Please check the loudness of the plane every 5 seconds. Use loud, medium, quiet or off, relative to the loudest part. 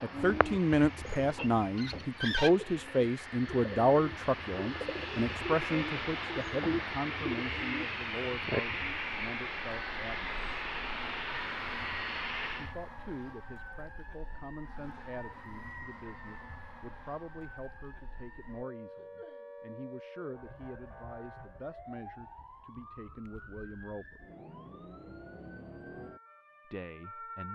medium, loud, loud, off, off, off.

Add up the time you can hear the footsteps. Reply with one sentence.
You can't hear the footsteps here.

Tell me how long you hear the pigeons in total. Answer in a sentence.
The pigeons can be heard for 9 seconds in total.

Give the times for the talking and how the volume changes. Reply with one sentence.
You can hear the talking from 0.0 to 10.4 s, getting quieter; from 12.6 to 24.2 s, at a steady volume; and briefly from 26.6 to 27.5 s.